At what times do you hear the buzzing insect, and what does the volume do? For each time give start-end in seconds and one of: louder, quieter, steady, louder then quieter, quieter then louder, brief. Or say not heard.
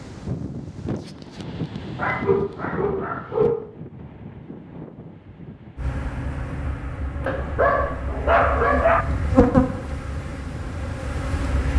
5.8-11.7 louder then quieter.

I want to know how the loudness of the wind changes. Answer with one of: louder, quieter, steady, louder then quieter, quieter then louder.
quieter.